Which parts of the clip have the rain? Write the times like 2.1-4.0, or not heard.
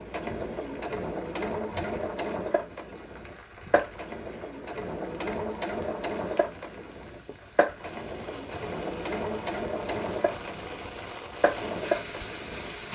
0.1-12.9.